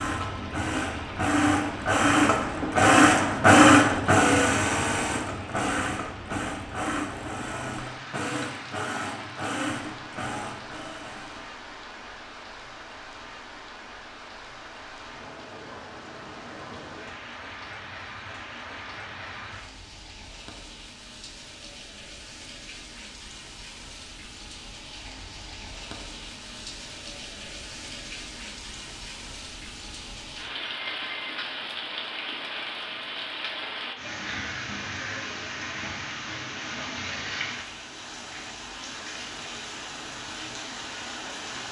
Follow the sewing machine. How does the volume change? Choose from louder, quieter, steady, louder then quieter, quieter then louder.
louder then quieter.